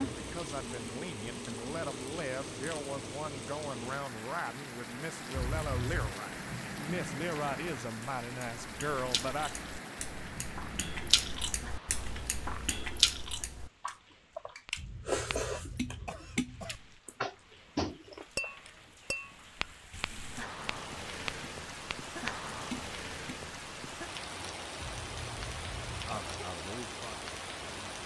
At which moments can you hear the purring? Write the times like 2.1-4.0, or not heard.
not heard.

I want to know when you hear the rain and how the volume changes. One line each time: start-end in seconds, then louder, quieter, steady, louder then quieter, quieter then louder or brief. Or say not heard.
0.0-28.0 quieter then louder.